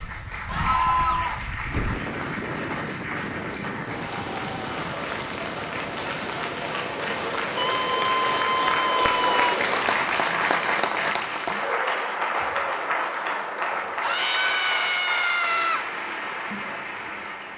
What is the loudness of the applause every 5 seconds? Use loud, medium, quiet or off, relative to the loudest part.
medium, loud, loud, medium.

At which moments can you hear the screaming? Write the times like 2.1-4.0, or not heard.
0.5-1.4, 7.5-9.6, 14.0-15.8.